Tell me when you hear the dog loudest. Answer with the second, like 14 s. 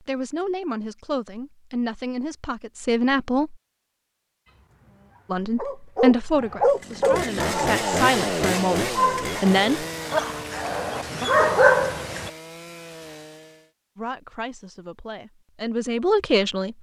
12 s.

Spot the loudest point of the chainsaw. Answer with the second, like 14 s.
8 s.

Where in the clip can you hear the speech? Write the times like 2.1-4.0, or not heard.
0.0-3.5, 5.3-9.8, 13.9-16.7.